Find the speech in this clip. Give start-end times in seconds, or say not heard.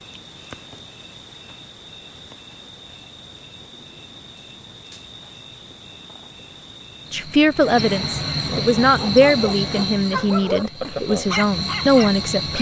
7.1-12.5.